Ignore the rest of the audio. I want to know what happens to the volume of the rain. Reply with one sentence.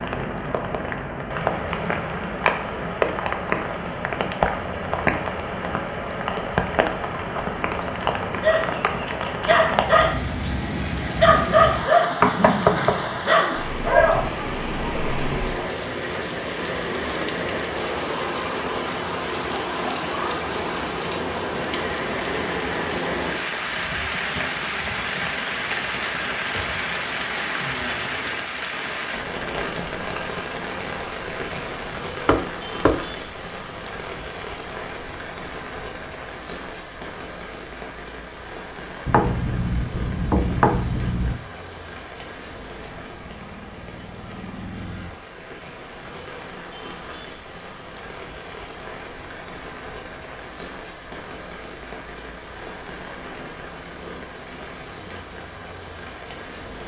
The loudness of the rain goes down.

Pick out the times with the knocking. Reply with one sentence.
The knocking can be heard from 12.2 to 13.0 s, from 32.2 to 33.0 s and from 39.0 to 41.4 s.